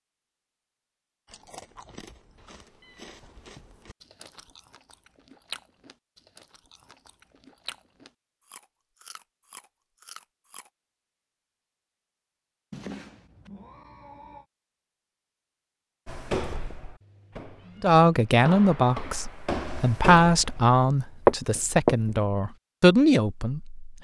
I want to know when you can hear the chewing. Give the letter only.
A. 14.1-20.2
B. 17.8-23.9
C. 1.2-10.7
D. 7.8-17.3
C.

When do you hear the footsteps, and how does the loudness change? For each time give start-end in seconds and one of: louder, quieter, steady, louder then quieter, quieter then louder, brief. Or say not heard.
16.1-22.2 louder.